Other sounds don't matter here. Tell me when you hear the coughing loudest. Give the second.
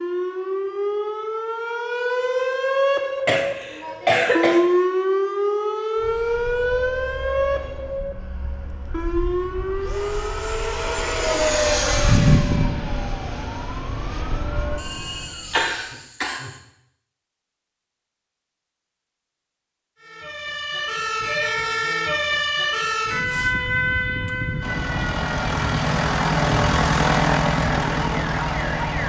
4 s.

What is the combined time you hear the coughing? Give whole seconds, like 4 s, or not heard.
3 s.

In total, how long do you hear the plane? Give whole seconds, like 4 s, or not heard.
13 s.